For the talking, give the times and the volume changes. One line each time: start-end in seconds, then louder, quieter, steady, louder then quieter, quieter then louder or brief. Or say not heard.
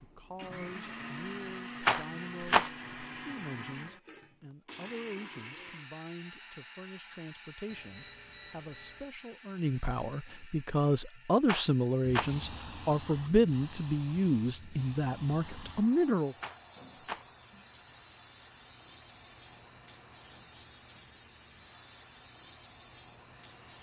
0.0-16.4 louder.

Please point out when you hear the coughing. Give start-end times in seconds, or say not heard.
not heard.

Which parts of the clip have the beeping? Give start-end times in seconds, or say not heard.
7.7-9.1.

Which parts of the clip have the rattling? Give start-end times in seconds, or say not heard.
1.8-2.7, 11.4-12.3, 16.4-17.2.